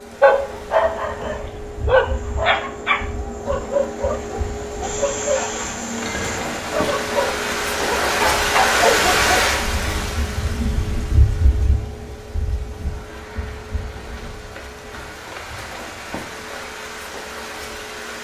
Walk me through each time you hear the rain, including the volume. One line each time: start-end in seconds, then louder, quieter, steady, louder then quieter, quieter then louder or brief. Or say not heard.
0.0-18.1 louder then quieter.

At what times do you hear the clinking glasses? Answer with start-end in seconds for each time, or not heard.
6.0-6.7.